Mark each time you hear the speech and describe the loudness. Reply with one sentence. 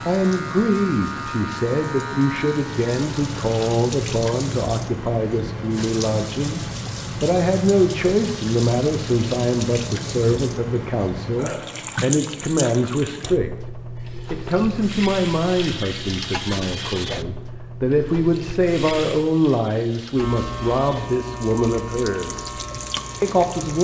The speech can be heard from 0.0 to 13.5 s, at a steady volume; from 14.3 to 22.5 s, getting quieter then louder; and briefly from 23.2 to 23.7 s.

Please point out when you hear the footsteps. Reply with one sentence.
The footsteps can't be heard in this clip.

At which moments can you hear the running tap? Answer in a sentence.
You can hear the running tap from 0.0 to 23.7 s.